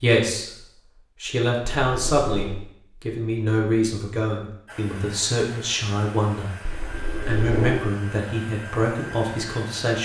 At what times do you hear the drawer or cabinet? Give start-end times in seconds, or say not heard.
1.9-2.5, 6.7-7.8.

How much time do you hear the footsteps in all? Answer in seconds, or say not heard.
not heard.